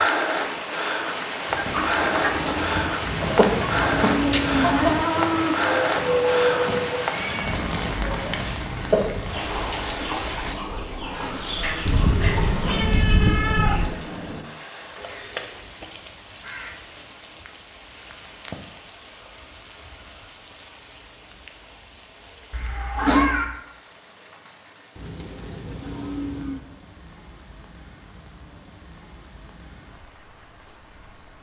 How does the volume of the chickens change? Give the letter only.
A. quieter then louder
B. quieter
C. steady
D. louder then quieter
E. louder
B.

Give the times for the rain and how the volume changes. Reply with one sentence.
You can hear the rain from 0.0 to 31.3 s, getting quieter.